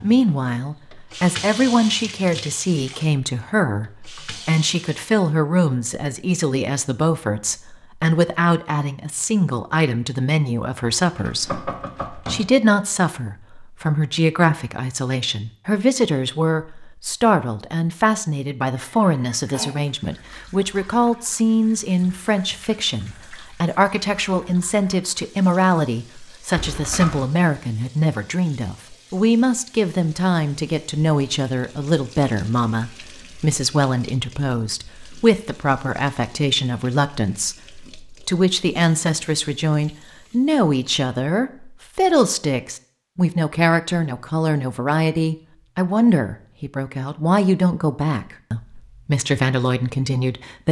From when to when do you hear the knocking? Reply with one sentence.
The knocking can be heard from 11.1 to 12.5 s and from 26.6 to 27.2 s.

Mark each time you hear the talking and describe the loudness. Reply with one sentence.
You can hear the talking from 0.0 to 50.6 s, at a steady volume.